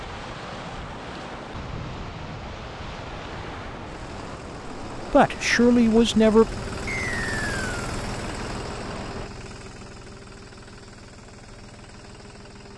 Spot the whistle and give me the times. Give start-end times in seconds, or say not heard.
6.8-7.8.